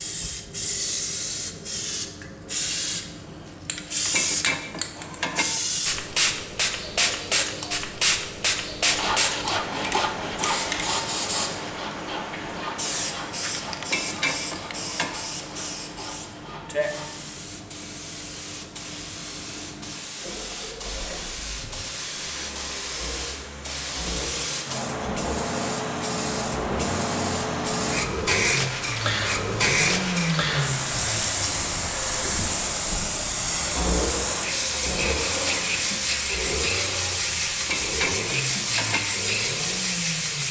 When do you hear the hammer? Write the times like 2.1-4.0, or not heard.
not heard.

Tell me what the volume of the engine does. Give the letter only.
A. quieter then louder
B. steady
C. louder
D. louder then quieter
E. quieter
C.